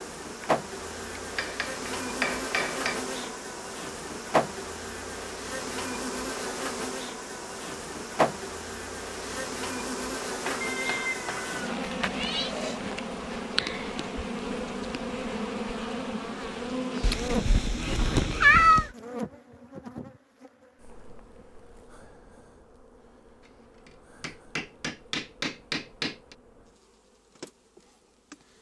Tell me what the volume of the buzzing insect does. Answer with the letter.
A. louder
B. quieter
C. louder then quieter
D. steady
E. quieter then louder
B.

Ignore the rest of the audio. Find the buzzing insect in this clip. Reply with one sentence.
The buzzing insect can be heard from 0.0 to 28.5 s.